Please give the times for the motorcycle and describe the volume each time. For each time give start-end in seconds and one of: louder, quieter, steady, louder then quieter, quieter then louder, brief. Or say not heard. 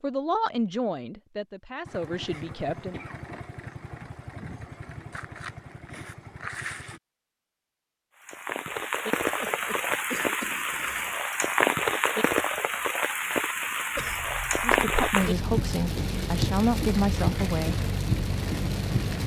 1.9-7.0 steady
17.2-19.2 brief.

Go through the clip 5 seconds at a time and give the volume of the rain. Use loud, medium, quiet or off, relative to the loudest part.
off, loud, loud, loud.